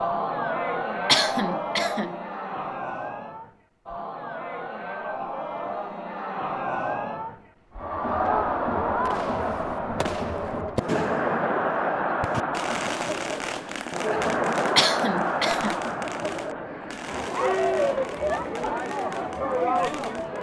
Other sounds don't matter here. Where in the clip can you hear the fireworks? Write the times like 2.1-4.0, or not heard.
9.1-20.3.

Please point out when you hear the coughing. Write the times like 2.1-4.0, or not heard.
1.1-2.1, 14.8-15.8.